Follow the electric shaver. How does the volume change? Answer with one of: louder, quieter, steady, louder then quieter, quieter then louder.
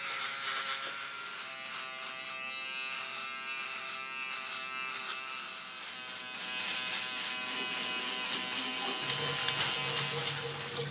louder.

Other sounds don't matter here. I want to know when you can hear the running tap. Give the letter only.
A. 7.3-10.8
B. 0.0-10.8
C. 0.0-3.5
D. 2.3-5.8
A.